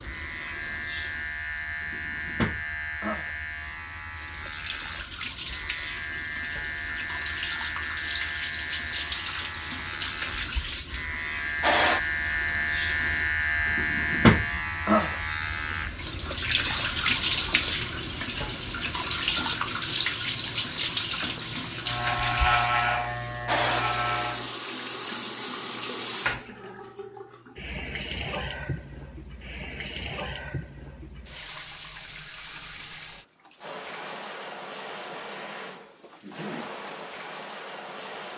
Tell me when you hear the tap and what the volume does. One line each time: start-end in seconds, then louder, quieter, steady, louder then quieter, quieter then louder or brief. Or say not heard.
0.0-38.3 louder then quieter.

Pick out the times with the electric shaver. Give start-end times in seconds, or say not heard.
0.0-24.6.